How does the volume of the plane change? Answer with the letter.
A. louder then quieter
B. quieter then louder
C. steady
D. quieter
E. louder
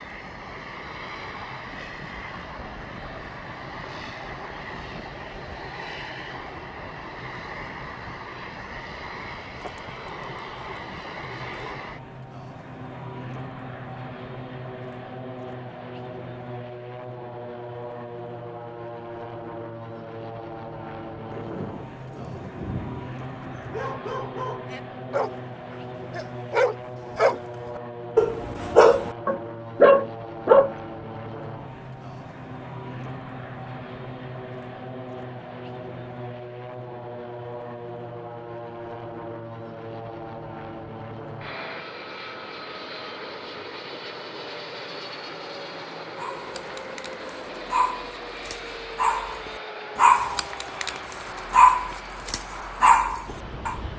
C.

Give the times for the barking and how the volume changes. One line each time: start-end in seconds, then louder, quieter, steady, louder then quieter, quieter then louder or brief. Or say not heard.
23.6-30.7 quieter then louder
46.1-53.8 louder.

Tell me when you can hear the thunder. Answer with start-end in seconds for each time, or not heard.
21.3-23.7.